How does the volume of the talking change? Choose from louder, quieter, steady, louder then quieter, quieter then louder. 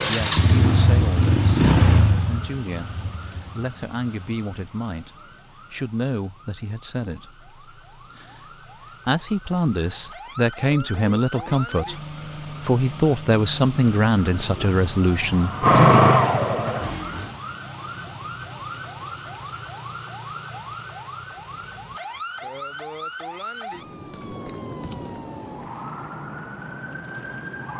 louder.